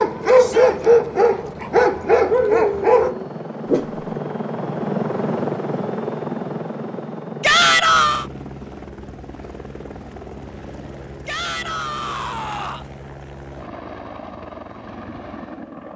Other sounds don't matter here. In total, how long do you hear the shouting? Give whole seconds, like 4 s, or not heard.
3 s.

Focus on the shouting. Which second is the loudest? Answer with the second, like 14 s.
8 s.